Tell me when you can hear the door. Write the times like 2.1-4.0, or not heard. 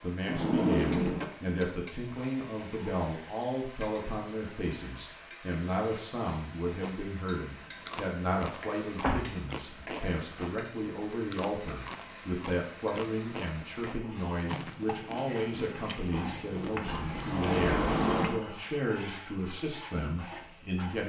0.2-1.2, 9.0-9.8, 16.1-18.4.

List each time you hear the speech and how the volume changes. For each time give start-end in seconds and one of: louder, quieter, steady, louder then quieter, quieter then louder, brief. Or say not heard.
0.0-21.0 steady.